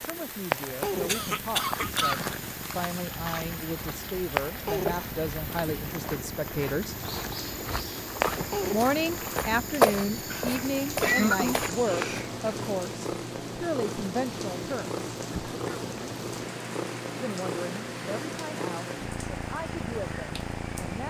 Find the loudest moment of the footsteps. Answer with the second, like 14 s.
10 s.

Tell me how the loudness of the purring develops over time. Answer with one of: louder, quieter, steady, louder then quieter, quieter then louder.
steady.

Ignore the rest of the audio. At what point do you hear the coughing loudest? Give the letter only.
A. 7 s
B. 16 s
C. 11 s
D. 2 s
C.